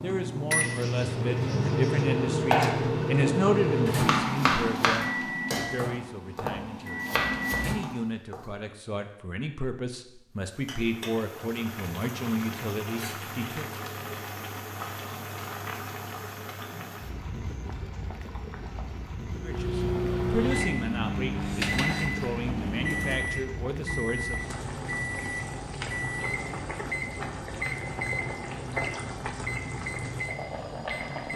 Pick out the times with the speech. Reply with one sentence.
You can hear the speech from 0.0 to 13.7 s and from 19.4 to 24.6 s.